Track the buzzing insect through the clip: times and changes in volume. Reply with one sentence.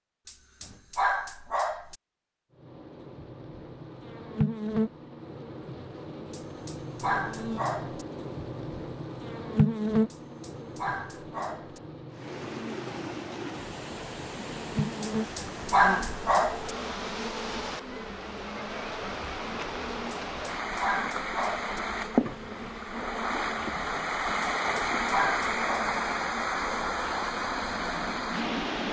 The buzzing insect can be heard from 2.5 to 28.8 s, getting quieter.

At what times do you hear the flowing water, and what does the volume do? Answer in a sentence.
The flowing water can be heard from 12.1 to 28.8 s, getting louder.